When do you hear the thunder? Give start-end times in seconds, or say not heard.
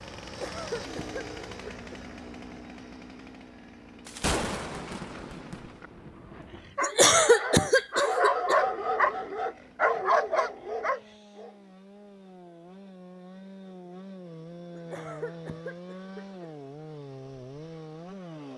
4.0-6.7.